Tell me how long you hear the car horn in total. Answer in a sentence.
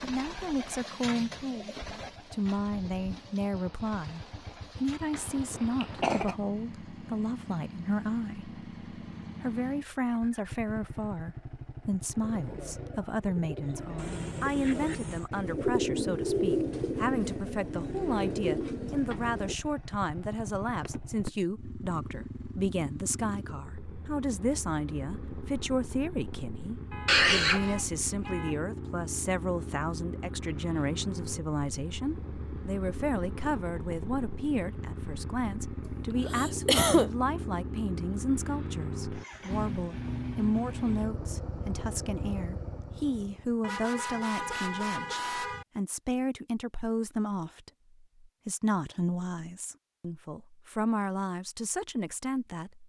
The car horn can be heard for 5 seconds in total.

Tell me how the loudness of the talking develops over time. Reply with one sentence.
The volume of the talking stays about the same.